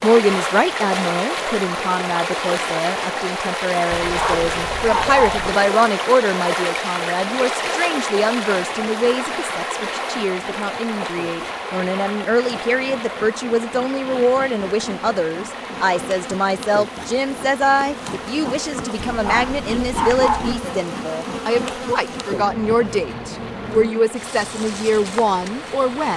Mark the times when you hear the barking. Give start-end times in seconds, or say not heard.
3.9-5.5, 18.9-20.6.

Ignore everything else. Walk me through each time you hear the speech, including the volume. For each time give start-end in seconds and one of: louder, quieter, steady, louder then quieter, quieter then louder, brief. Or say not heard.
0.0-26.1 steady.